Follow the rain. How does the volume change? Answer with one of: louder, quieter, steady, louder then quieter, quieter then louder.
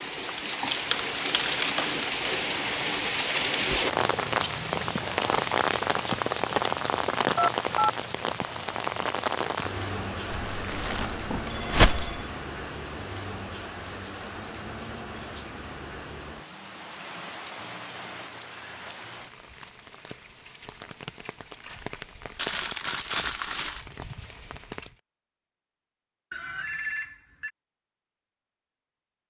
quieter.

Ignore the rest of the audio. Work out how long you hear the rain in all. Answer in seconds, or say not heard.
25 s.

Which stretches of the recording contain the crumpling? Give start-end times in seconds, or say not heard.
0.3-1.9, 10.3-12.1, 22.4-23.9.